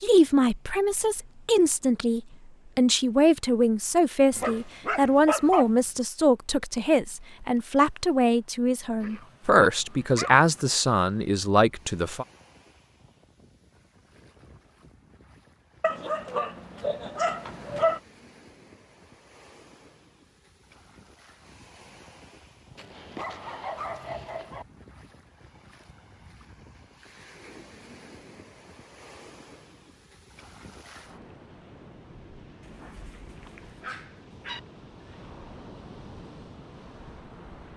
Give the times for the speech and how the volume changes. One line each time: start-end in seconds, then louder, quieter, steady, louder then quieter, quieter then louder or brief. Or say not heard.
0.0-12.2 steady.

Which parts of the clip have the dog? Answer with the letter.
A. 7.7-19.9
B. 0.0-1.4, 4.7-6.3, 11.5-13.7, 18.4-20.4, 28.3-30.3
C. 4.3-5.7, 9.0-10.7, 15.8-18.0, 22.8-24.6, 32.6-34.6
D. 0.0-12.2
C.